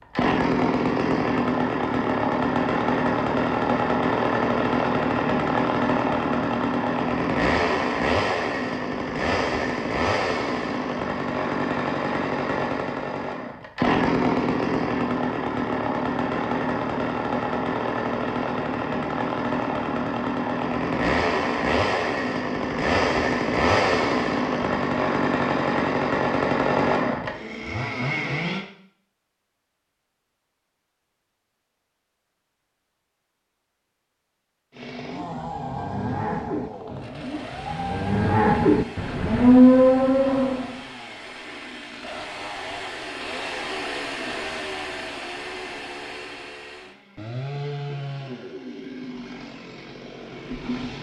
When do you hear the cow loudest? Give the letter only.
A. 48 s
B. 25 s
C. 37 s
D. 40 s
D.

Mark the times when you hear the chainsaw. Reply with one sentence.
You can hear the chainsaw from 0.1 to 28.6 s and from 34.7 to 50.9 s.